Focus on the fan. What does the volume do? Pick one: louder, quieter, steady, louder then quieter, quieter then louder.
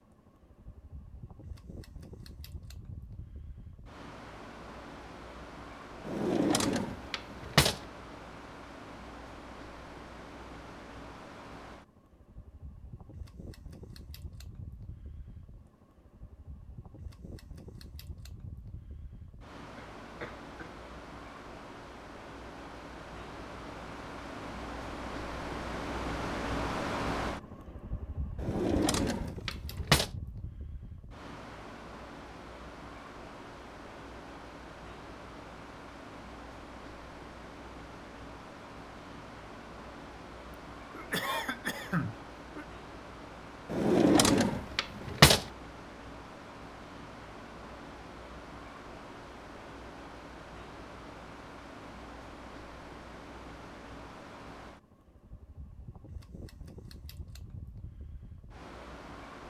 louder then quieter.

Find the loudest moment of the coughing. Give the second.
42 s.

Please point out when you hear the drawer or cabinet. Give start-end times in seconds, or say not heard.
6.0-7.8, 28.4-30.1, 43.7-45.5.